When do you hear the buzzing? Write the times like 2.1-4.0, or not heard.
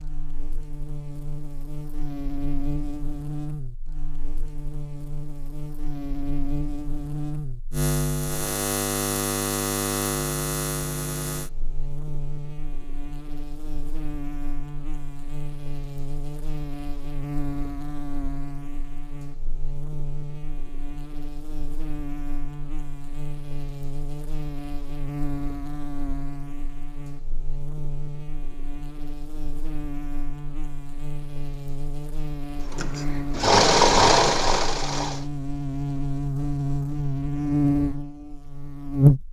0.0-39.2.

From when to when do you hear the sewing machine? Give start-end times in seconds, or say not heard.
32.7-35.2.